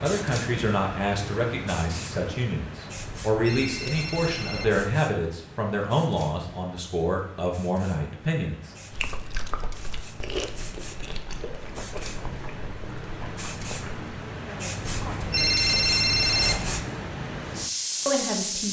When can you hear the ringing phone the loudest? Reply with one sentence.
The loudest moment of the ringing phone is at 16 seconds.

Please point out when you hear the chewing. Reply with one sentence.
You can hear the chewing from 8.9 to 13.9 s.